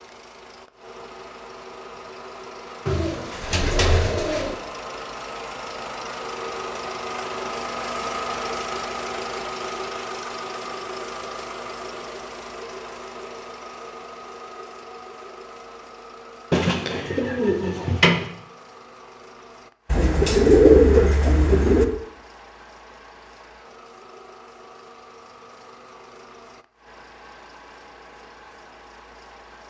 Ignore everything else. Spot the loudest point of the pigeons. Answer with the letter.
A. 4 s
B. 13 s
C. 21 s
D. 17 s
C.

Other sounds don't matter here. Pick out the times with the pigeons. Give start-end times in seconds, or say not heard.
2.9-4.5, 16.5-18.2, 19.9-21.9.